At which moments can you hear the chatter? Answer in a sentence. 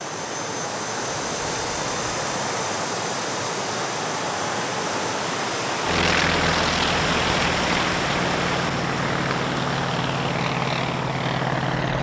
The chatter can't be heard in this clip.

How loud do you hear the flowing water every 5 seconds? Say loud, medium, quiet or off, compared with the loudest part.
medium, loud, medium.